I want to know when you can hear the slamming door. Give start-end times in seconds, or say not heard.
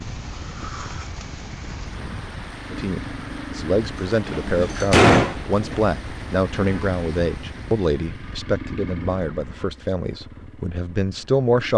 4.0-5.8.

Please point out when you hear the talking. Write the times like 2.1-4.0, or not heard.
2.7-11.7.